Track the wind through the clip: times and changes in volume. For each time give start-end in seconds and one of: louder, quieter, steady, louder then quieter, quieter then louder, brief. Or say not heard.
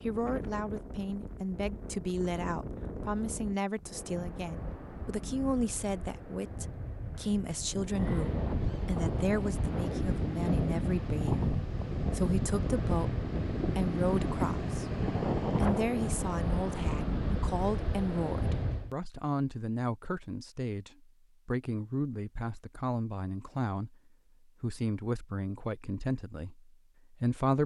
0.0-18.9 louder.